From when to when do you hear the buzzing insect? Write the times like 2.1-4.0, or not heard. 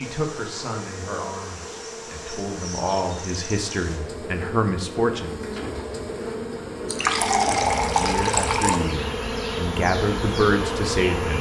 0.0-11.3.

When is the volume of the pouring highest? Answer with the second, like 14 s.
8 s.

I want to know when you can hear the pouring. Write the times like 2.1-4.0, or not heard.
6.8-8.8.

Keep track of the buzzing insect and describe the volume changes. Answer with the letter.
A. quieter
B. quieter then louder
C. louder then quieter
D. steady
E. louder
E.